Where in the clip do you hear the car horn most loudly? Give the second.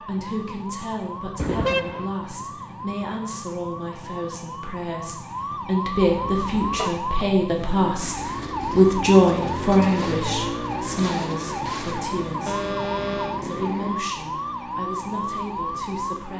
2 s.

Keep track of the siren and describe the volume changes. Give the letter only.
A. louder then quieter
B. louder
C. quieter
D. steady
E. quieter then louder
B.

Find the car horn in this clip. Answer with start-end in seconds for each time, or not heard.
1.4-2.1, 6.0-7.0, 12.4-13.4.